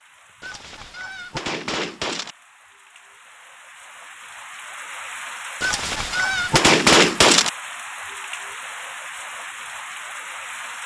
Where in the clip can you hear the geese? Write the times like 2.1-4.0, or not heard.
0.4-2.4, 5.6-7.5.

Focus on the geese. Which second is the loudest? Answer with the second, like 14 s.
7 s.